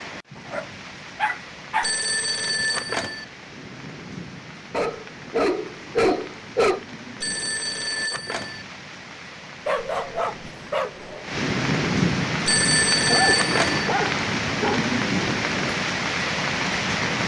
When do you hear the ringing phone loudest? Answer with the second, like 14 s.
13 s.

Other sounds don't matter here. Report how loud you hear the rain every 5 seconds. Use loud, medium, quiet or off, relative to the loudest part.
quiet, quiet, loud, loud.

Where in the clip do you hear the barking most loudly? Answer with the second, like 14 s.
6 s.